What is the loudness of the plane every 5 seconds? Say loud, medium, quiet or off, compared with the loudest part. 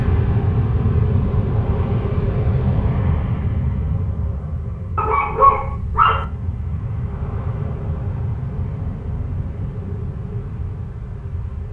loud, medium, medium.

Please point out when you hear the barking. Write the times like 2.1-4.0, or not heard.
5.0-6.2.